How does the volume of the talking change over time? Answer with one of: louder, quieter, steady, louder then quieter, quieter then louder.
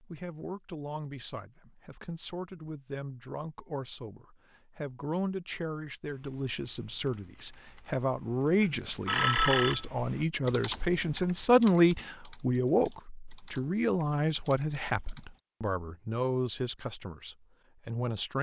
louder then quieter.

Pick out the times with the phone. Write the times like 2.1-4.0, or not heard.
8.6-9.8.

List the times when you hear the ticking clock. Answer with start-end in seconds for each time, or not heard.
not heard.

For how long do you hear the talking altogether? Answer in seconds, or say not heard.
18 s.